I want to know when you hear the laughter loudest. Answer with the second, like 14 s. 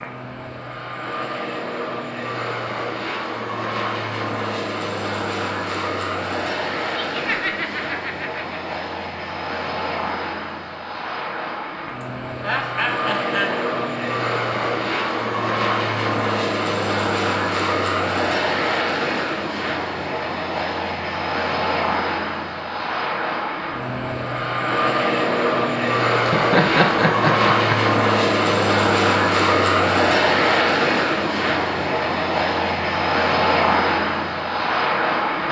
27 s.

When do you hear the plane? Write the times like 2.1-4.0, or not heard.
0.0-35.4.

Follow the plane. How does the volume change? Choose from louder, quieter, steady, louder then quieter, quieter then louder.
louder.